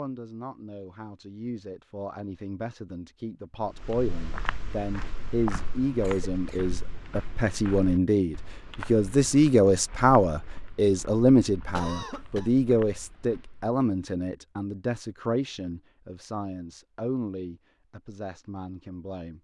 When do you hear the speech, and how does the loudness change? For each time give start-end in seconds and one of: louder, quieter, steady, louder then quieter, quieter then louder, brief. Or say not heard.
0.0-19.3 louder then quieter.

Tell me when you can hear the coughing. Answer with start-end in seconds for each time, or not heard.
6.0-6.6, 11.8-12.5.